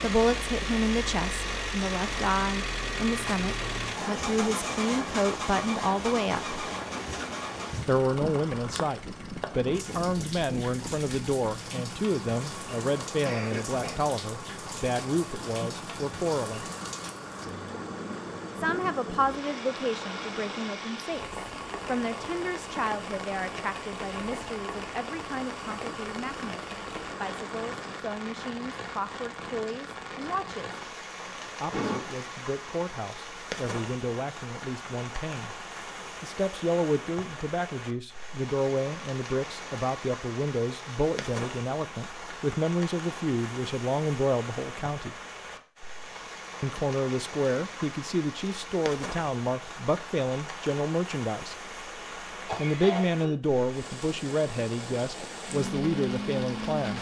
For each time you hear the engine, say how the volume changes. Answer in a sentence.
You can hear the engine from 0.0 to 28.1 s, getting quieter; and briefly from 55.5 to 56.9 s.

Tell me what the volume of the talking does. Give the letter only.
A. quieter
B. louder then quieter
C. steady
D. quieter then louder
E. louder
D.